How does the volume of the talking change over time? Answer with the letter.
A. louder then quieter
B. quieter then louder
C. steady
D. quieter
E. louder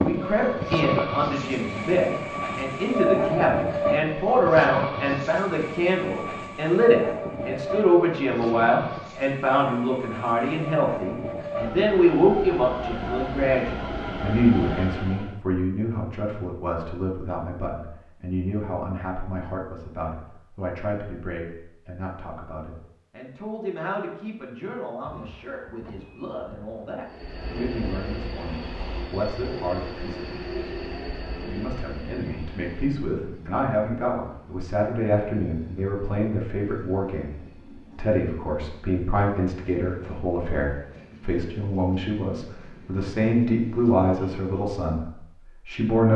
B.